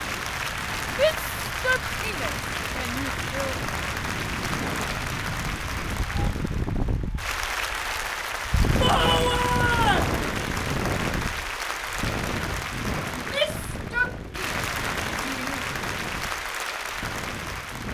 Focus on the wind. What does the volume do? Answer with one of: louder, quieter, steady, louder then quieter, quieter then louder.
louder then quieter.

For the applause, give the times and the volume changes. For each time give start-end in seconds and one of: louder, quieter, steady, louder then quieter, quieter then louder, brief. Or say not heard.
0.0-17.8 steady.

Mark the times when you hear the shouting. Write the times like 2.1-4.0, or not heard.
0.9-3.5, 8.8-10.2, 13.1-15.7.